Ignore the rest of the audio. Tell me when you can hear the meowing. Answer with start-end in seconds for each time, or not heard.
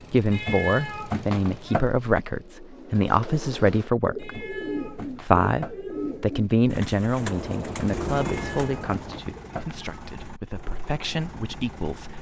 0.3-1.9, 4.2-6.2, 8.1-9.8.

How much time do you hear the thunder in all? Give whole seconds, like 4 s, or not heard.
2 s.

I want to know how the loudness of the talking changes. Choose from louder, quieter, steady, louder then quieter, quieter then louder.
quieter.